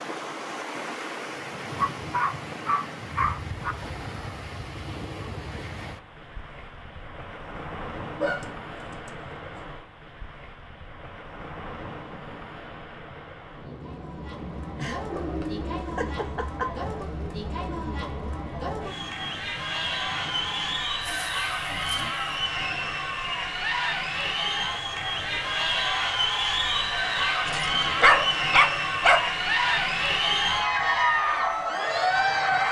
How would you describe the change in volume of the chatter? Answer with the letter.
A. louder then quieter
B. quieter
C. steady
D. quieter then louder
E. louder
E.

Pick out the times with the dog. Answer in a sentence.
You can hear the dog from 1.8 to 3.8 s, from 8.2 to 9.6 s, from 14.8 to 16.8 s, from 21.0 to 22.1 s and from 27.4 to 29.3 s.